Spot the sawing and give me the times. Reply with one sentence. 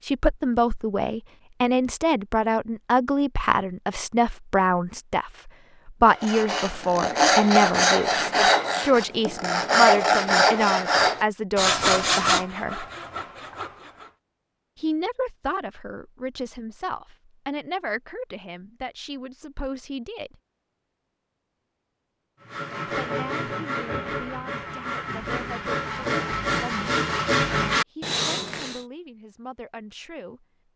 The sawing can be heard from 6.0 to 14.1 s and from 22.4 to 28.9 s.